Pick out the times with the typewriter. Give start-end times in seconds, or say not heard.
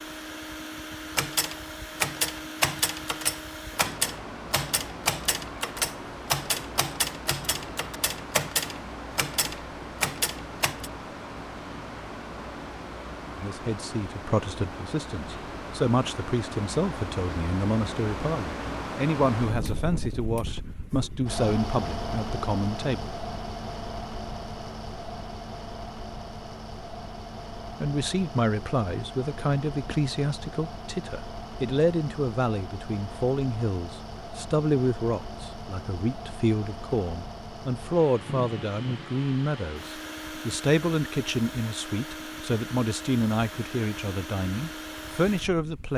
1.1-10.9.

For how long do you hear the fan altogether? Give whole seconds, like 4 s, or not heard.
46 s.